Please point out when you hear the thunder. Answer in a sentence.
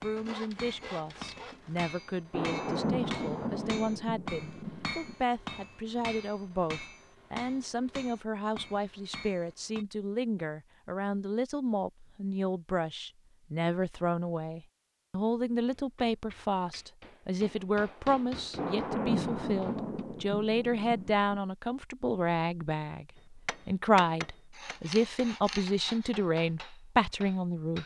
The thunder can be heard from 2.3 to 5.2 s and from 18.6 to 21.4 s.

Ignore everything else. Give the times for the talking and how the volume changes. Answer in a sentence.
You can hear the talking from 0.0 to 27.8 s, getting louder.